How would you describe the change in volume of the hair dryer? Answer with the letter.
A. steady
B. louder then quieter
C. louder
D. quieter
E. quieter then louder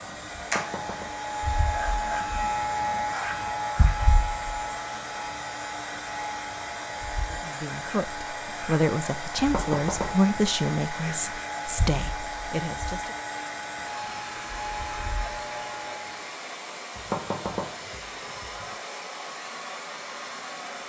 A.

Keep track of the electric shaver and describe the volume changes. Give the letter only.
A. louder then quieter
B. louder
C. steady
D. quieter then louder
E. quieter
E.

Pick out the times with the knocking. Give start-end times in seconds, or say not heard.
0.3-1.1, 9.3-10.3, 16.9-18.8.